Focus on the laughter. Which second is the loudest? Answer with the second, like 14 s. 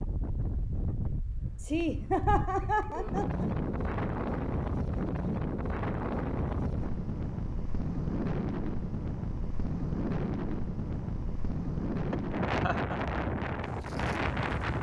2 s.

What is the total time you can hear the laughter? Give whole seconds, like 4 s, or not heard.
3 s.